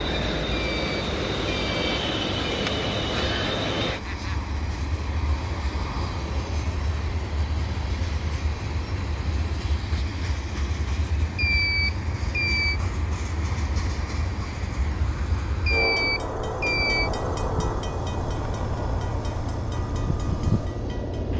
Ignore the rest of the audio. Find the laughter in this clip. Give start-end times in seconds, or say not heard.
3.9-4.5.